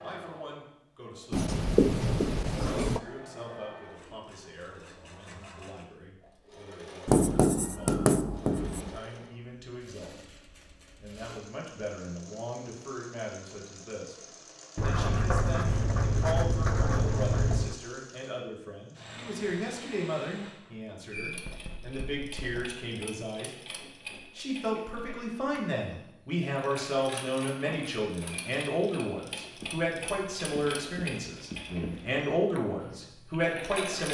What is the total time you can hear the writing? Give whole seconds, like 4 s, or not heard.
11 s.